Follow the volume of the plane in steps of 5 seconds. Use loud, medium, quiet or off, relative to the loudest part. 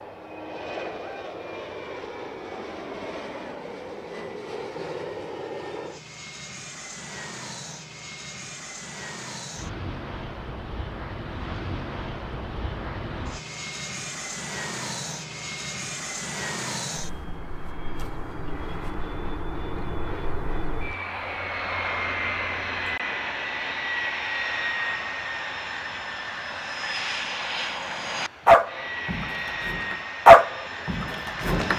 medium, medium, medium, medium, loud, loud, medium.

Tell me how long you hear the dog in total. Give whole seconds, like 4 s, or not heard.
3 s.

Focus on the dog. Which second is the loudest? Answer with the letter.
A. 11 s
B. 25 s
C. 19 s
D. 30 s
D.